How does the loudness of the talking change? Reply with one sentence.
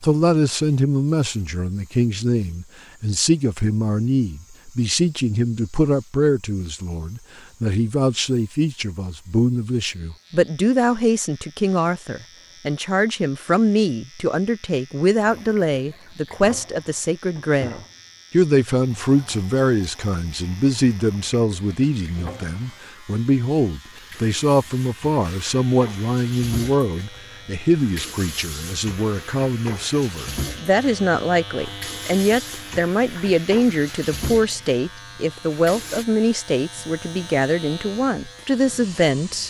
The loudness of the talking stays about the same.